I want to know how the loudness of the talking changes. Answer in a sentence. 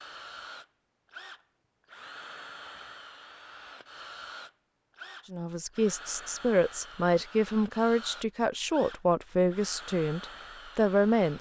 The loudness of the talking stays about the same.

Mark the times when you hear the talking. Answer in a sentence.
You can hear the talking from 5.3 to 11.3 s.